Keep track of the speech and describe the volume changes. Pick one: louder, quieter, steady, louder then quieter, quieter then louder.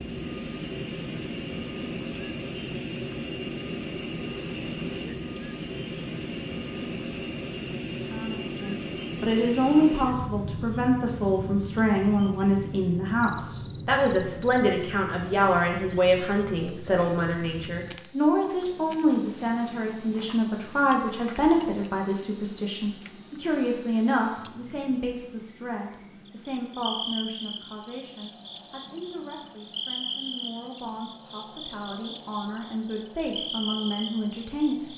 quieter.